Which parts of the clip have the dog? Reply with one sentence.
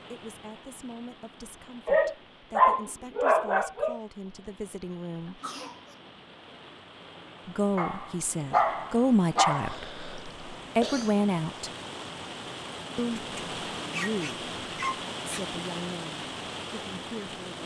The dog can be heard from 1.9 to 4.0 s, from 7.8 to 9.8 s and from 13.2 to 15.4 s.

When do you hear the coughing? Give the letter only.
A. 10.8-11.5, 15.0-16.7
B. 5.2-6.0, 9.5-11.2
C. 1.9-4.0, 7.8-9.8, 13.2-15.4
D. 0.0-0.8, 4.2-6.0
B.